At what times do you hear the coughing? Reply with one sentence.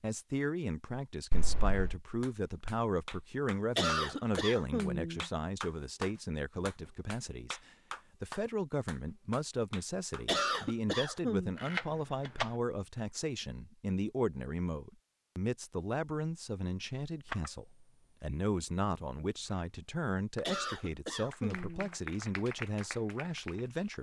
You can hear the coughing from 3.8 to 5.3 s, from 10.2 to 11.6 s and from 20.4 to 21.9 s.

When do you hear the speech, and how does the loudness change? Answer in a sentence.
You can hear the speech from 0.0 to 23.9 s, at a steady volume.